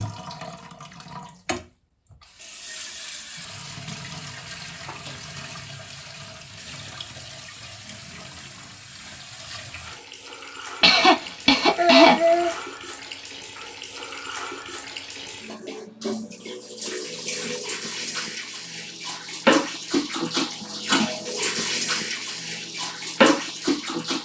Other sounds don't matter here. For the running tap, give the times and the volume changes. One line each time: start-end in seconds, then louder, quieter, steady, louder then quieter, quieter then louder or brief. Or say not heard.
0.0-24.2 louder.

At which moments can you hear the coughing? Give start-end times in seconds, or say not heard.
10.8-12.6.